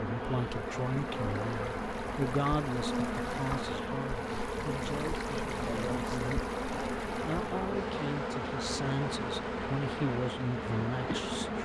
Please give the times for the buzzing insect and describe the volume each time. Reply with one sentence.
The buzzing insect can be heard from 0.0 to 11.6 s, at a steady volume.